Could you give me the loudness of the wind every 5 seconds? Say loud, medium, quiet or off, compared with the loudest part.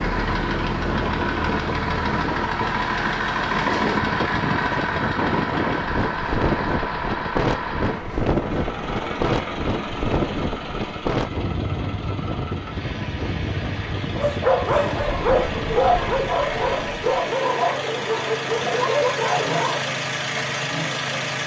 loud, loud, loud, medium, off.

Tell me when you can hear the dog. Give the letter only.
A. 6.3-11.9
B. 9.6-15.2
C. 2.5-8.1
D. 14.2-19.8
D.